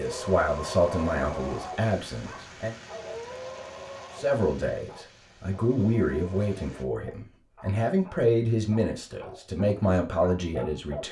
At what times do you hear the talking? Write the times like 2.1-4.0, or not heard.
0.0-2.8, 4.2-11.0.